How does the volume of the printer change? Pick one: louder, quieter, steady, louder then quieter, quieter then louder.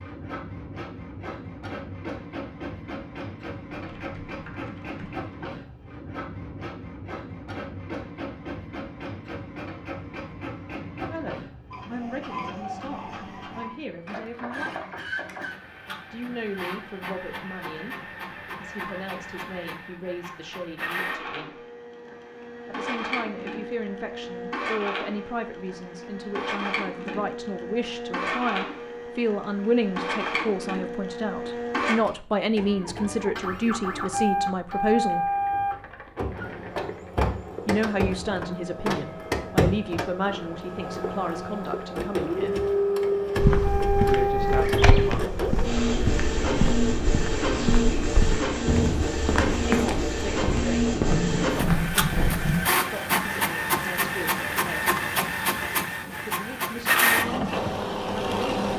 louder.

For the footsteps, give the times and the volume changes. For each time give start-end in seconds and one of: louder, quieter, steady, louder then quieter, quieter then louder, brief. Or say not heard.
43.4-52.5 steady.